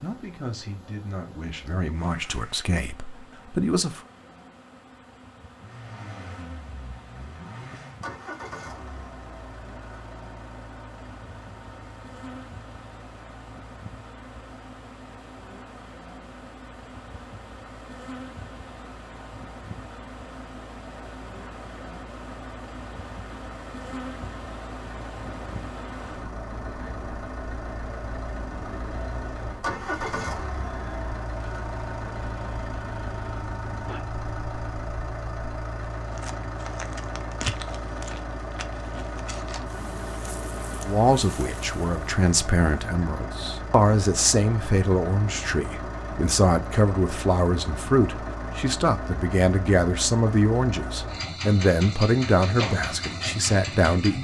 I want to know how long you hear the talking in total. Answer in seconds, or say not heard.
17 s.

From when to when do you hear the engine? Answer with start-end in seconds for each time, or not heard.
5.5-54.1.